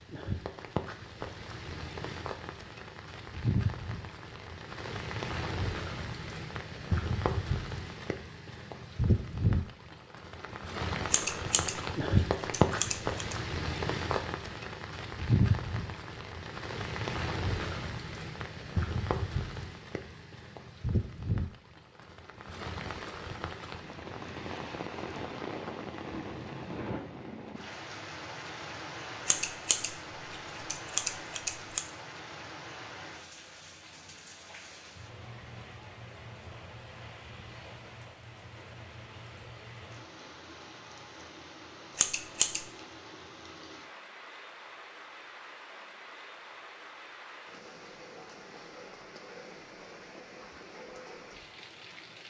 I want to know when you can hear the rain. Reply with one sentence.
You can hear the rain from 0.0 to 52.2 s.